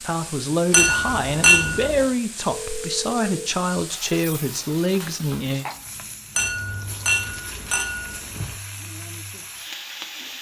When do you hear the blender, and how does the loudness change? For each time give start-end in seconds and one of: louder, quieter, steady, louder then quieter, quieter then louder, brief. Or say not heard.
not heard.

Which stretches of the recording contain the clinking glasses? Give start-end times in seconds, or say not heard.
0.7-2.0, 6.3-8.6.